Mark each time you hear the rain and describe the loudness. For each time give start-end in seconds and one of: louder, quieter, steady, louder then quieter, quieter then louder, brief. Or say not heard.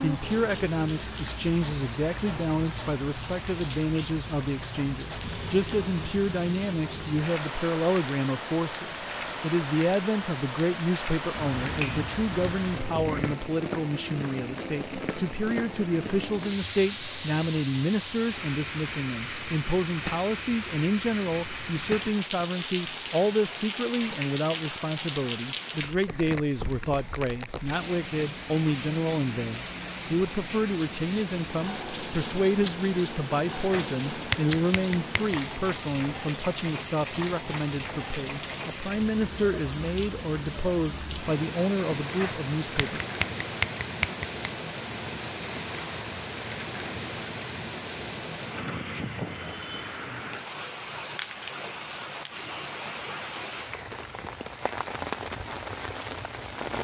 0.0-56.8 steady.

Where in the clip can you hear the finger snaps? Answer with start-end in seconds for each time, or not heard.
11.3-13.3, 33.5-35.4, 42.0-44.5.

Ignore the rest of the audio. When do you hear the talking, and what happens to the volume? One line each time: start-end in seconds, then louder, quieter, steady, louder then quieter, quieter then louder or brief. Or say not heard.
0.0-43.0 steady.